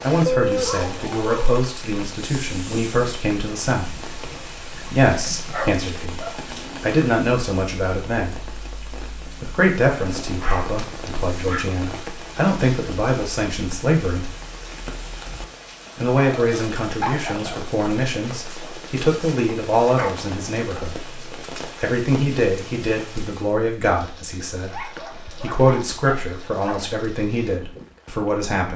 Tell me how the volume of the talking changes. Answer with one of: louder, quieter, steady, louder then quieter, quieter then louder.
steady.